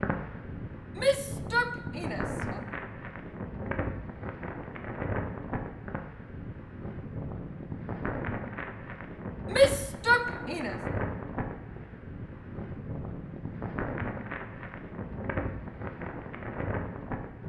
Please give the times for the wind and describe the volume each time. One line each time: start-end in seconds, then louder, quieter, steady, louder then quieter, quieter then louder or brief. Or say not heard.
0.0-17.4 steady.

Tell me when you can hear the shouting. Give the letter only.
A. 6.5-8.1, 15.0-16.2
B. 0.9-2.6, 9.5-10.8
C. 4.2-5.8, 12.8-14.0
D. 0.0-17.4
B.